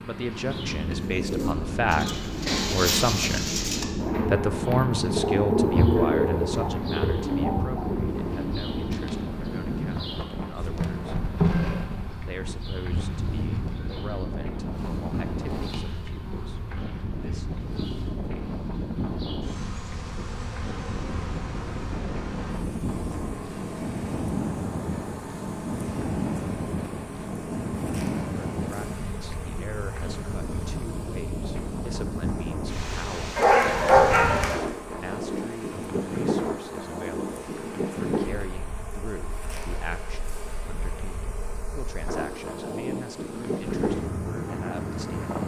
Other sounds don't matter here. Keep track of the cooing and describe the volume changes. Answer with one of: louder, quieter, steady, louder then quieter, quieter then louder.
louder then quieter.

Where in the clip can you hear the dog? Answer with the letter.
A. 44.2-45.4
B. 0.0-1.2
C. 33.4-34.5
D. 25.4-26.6
C.